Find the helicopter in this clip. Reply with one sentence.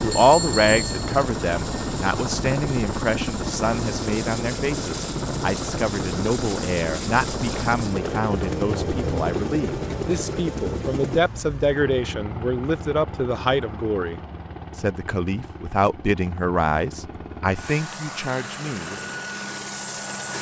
The helicopter can be heard from 0.0 to 20.3 s.